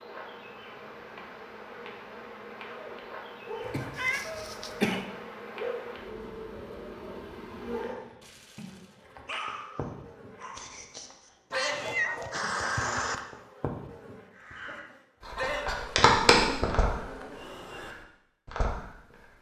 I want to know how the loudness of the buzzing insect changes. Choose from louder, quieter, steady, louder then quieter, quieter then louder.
louder.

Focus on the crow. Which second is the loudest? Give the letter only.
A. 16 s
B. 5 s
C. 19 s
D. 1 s
A.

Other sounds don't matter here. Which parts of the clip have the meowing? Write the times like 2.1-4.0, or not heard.
4.0-5.0, 11.5-13.2.